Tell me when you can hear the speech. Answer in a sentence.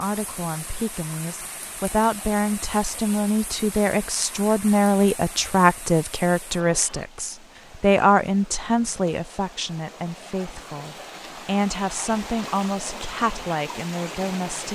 The speech can be heard from 0.0 to 14.7 s.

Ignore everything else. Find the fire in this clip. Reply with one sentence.
You can't hear the fire here.